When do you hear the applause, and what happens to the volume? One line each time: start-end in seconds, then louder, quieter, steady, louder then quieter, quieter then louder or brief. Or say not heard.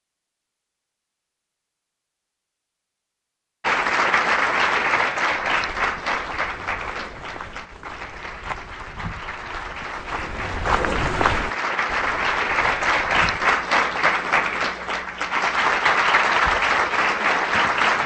3.6-18.0 quieter then louder.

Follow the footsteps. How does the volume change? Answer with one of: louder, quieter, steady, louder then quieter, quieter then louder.
louder then quieter.